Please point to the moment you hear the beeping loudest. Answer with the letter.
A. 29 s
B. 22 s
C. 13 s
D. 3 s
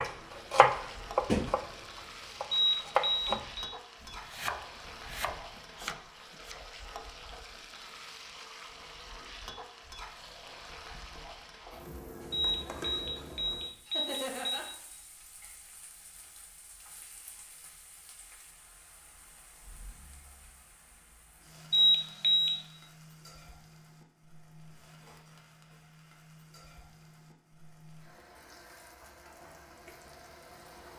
B.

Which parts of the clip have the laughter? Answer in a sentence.
You can hear the laughter from 13.8 to 14.7 s.